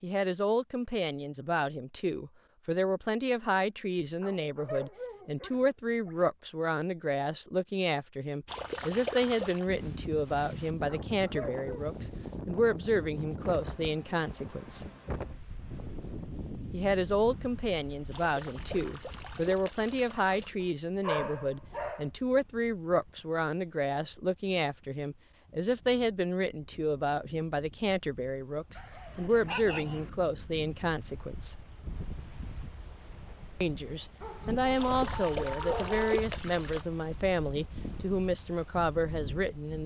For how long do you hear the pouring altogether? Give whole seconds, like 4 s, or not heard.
6 s.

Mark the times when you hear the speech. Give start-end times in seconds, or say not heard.
0.0-14.8, 16.7-31.6, 33.6-39.8.